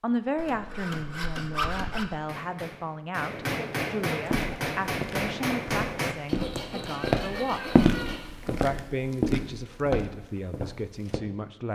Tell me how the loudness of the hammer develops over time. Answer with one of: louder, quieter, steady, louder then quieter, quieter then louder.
louder.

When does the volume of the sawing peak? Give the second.
2 s.